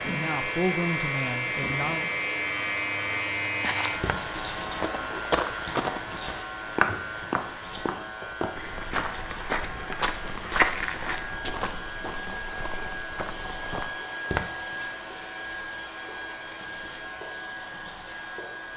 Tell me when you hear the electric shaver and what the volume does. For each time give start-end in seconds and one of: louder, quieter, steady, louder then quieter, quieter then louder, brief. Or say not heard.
0.0-18.7 quieter.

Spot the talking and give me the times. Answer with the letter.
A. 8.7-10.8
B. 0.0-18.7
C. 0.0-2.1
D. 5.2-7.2
C.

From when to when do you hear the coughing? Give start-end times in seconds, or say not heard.
not heard.